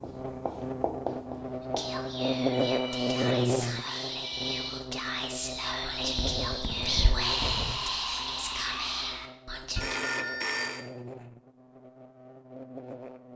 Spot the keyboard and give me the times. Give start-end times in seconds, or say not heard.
not heard.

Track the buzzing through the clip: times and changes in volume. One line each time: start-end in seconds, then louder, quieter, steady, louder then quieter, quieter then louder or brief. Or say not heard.
0.0-13.3 quieter.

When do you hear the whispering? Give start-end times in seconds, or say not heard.
1.6-10.0.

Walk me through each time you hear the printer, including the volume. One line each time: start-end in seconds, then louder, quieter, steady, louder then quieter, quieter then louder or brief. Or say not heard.
not heard.